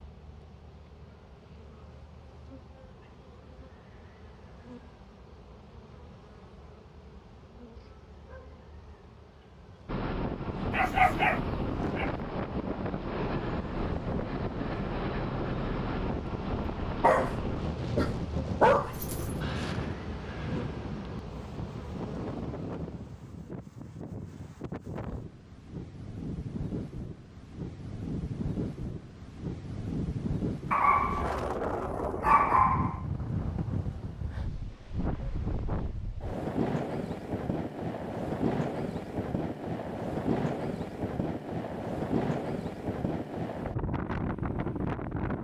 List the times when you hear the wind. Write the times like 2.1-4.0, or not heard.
9.8-45.4.